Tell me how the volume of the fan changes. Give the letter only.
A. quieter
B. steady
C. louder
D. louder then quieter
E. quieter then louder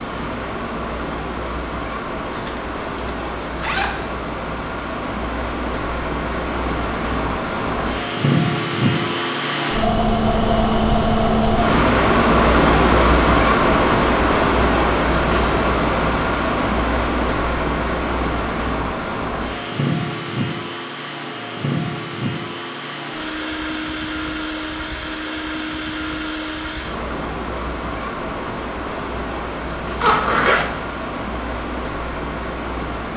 D.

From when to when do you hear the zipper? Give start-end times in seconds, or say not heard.
2.2-4.2, 30.0-30.7.